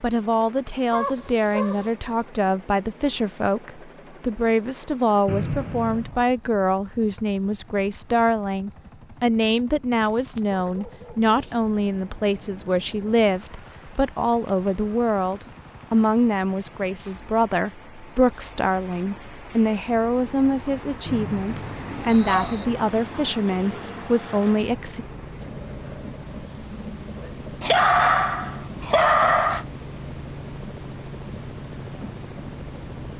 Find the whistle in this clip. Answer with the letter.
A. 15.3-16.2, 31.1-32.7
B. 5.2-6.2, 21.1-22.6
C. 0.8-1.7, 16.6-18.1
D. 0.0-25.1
B.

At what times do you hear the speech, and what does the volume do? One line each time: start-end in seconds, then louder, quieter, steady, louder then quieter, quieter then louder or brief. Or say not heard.
0.0-25.1 steady.